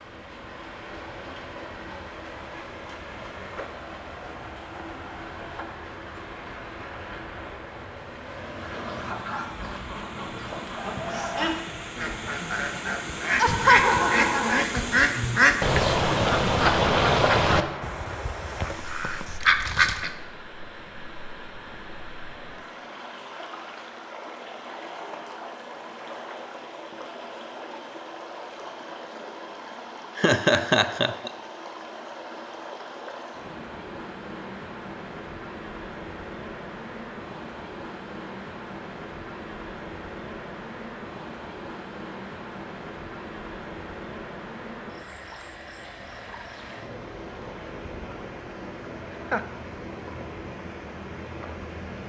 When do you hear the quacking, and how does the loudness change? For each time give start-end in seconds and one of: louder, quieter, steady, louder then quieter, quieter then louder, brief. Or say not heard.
8.6-20.1 louder then quieter.